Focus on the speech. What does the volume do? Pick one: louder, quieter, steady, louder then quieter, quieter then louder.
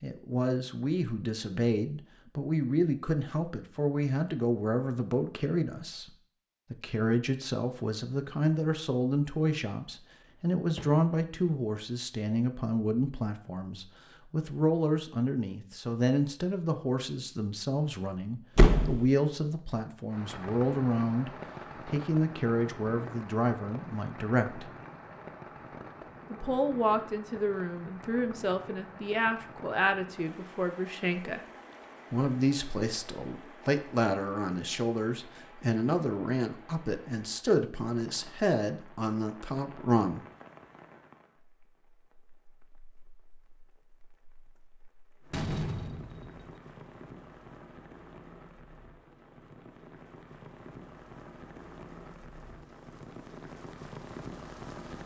steady.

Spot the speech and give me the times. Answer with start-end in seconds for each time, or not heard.
0.0-6.1, 6.7-24.7, 26.3-31.4, 32.1-40.2.